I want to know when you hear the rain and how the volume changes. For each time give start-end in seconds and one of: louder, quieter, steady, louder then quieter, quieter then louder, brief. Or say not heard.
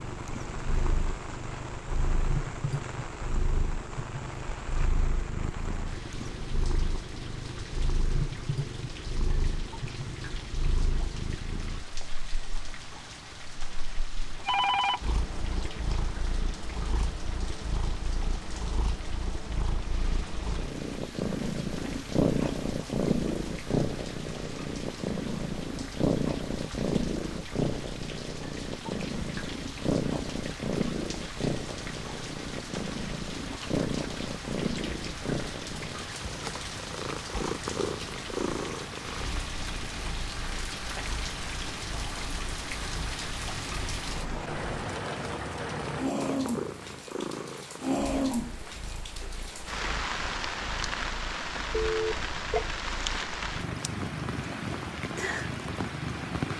0.0-56.5 louder.